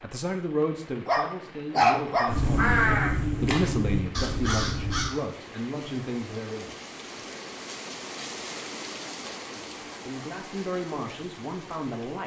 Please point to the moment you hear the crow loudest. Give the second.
3 s.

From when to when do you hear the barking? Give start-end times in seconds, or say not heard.
1.1-2.4.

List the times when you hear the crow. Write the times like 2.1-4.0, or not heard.
2.2-5.1.